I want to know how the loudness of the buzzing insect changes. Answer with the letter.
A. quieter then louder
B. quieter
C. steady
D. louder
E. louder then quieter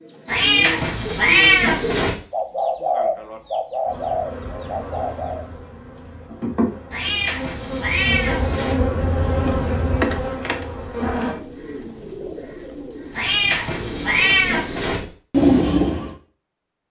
D.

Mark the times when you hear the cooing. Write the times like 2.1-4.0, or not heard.
0.0-5.5, 10.6-16.1.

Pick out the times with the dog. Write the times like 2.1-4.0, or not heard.
not heard.